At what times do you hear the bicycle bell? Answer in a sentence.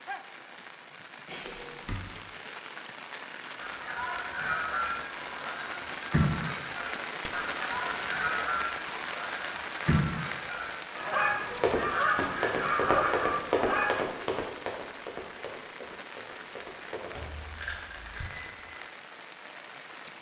You can hear the bicycle bell from 1.2 to 2.0 s, from 7.2 to 7.9 s and from 17.1 to 18.8 s.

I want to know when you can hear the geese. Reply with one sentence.
The geese can be heard from 3.6 to 14.1 s.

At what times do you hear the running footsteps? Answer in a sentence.
The running footsteps can be heard from 11.5 to 17.2 s.